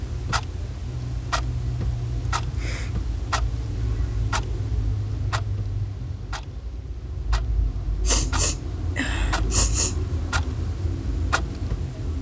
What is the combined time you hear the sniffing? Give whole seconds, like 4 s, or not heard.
2 s.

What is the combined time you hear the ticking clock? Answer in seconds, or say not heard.
12 s.